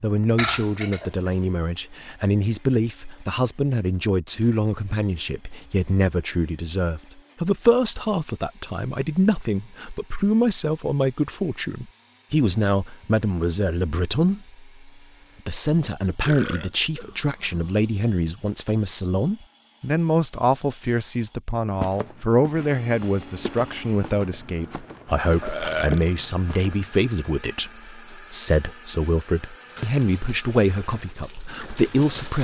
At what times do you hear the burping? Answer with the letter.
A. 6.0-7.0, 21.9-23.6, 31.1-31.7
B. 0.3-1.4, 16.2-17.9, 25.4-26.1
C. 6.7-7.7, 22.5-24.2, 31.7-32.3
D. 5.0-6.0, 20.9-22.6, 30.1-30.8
B.